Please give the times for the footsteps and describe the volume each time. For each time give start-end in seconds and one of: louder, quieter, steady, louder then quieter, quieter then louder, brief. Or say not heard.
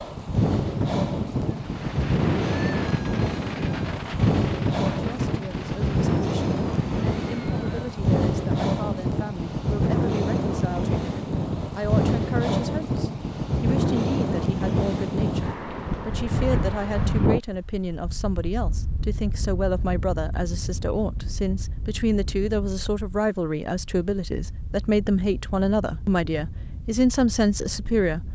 not heard.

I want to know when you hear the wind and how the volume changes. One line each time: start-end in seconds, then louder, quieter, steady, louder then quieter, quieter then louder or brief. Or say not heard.
0.0-28.3 quieter.